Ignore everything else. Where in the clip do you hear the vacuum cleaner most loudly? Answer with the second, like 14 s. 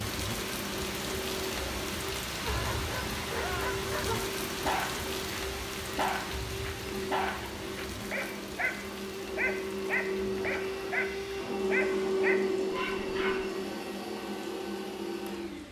12 s.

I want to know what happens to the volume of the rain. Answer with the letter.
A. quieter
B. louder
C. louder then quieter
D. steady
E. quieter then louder
A.